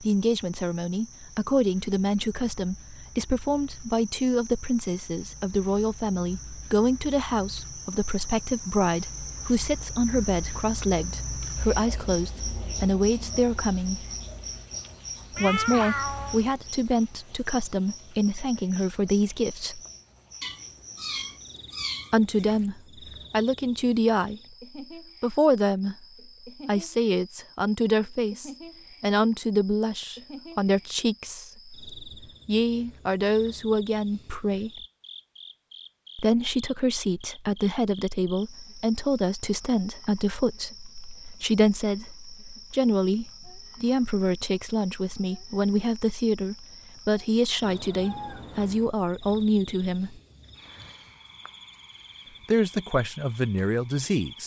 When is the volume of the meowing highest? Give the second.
16 s.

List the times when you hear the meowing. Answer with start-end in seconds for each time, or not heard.
15.3-16.4, 20.4-22.6, 47.6-49.0.